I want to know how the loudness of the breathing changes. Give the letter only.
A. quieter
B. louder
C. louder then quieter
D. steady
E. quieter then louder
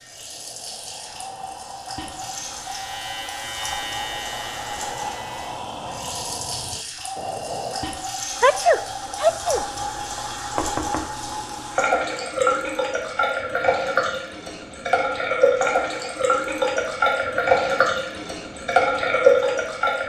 B.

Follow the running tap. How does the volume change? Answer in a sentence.
The loudness of the running tap goes up.